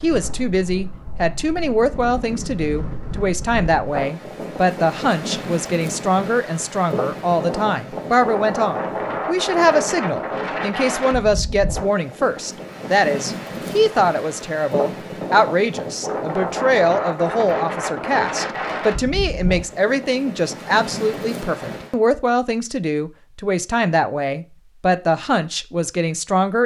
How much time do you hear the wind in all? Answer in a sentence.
The wind can be heard for 22 seconds in total.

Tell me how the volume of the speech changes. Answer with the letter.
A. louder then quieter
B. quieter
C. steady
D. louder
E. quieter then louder
C.